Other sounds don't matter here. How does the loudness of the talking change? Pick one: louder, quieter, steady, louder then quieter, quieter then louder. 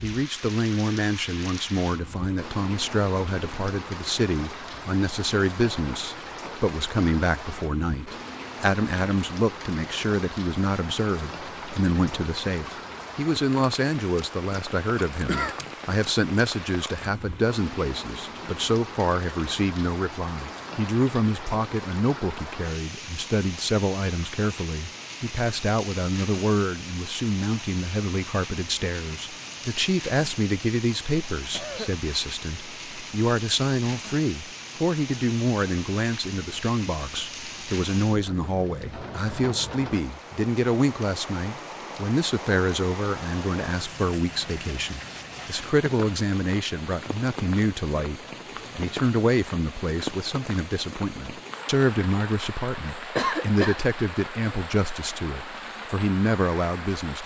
steady.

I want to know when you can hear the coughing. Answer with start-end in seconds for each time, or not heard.
15.2-15.7, 31.4-32.0, 53.1-53.9.